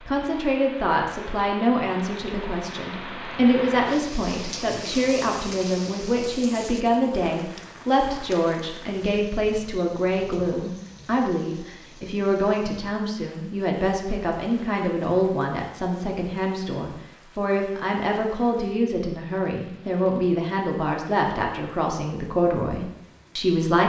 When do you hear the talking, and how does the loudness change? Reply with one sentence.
The talking can be heard from 0.1 to 23.8 s, at a steady volume.